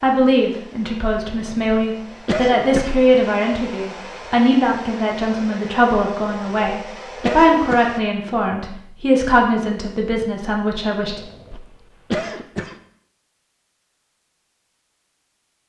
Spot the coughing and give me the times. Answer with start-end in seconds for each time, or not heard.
1.2-3.0, 6.2-7.9, 11.1-12.8.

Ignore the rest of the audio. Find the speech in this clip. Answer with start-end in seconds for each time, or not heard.
0.0-11.2.